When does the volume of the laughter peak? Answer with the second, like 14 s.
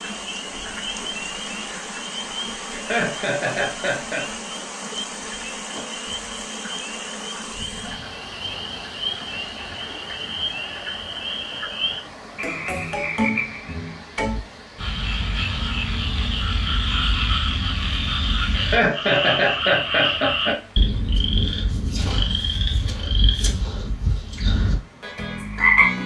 19 s.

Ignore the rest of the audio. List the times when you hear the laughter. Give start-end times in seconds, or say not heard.
2.7-4.3, 18.6-20.6.